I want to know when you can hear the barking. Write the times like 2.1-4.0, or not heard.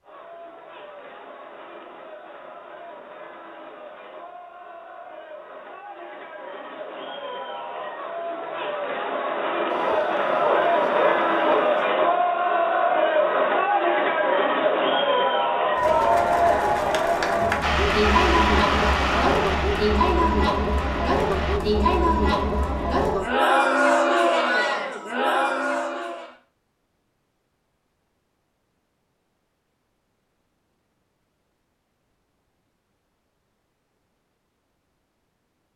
9.7-11.8.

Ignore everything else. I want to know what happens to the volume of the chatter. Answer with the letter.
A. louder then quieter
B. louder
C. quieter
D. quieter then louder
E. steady
B.